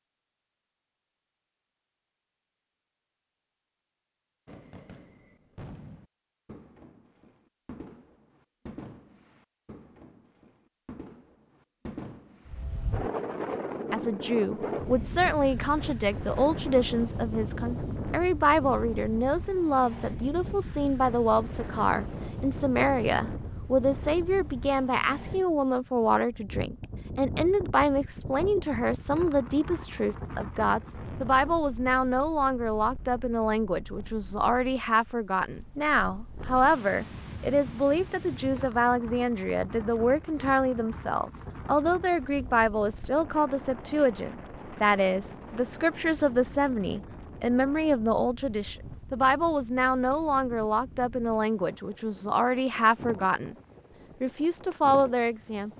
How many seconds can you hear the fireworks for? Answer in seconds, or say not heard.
8 s.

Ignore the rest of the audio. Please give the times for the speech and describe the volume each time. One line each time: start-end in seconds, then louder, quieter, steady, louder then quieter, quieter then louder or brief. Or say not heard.
13.9-53.5 steady
54.2-55.7 brief.